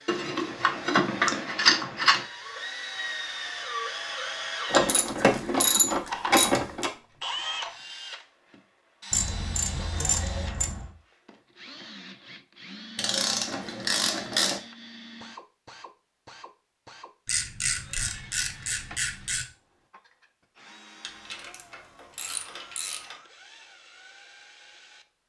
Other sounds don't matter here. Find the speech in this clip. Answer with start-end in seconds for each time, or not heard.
not heard.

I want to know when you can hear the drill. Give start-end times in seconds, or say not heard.
0.0-25.1.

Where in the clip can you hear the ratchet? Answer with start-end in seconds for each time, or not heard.
0.1-2.2, 4.7-6.9, 9.1-10.9, 12.9-14.6, 17.2-19.4, 21.0-23.2.